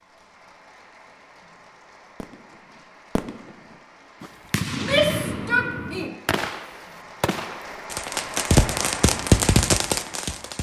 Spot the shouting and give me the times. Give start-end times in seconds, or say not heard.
4.7-6.2.